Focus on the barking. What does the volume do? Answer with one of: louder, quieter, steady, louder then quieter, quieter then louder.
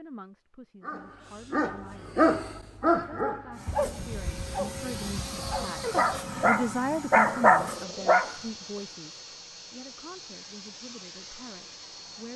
quieter then louder.